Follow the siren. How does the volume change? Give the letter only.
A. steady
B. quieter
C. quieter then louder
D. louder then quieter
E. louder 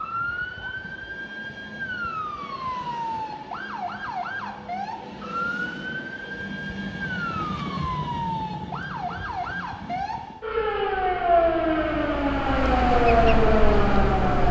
E.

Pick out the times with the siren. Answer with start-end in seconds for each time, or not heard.
0.0-14.4.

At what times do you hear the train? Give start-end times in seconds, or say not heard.
0.0-10.5.